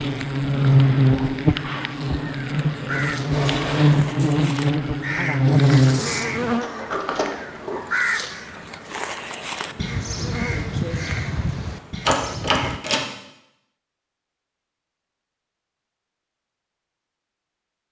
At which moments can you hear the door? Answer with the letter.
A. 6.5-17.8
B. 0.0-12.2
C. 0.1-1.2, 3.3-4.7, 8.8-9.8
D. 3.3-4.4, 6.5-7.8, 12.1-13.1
D.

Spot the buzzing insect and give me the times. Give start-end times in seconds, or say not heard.
0.0-12.2.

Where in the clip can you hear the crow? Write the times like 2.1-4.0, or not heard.
1.4-12.8.